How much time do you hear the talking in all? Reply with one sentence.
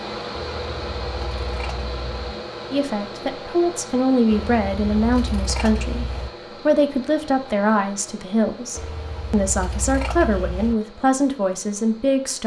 You can hear the talking for 10 seconds altogether.